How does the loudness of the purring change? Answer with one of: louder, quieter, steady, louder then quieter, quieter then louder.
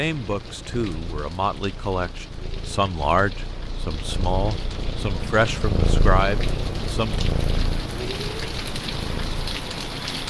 louder then quieter.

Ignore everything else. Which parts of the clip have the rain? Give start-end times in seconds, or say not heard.
0.0-10.2.